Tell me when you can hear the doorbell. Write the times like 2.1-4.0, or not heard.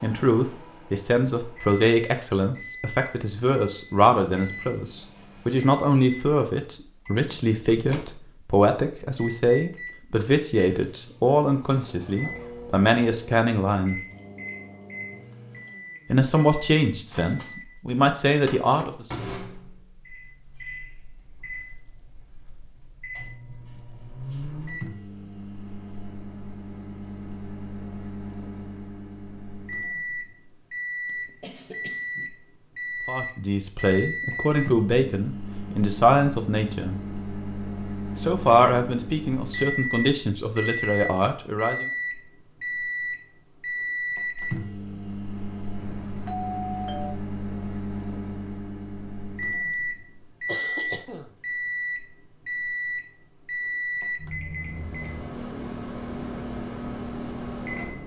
45.8-47.2.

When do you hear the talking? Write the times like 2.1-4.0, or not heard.
0.0-14.0, 16.1-19.1, 33.0-37.0, 38.1-41.9.